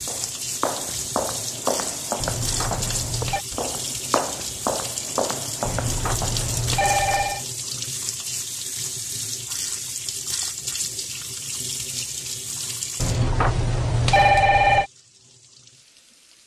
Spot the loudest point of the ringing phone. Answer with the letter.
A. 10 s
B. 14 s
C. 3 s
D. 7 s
B.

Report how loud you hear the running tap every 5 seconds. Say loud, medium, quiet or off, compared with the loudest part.
loud, loud, loud, quiet.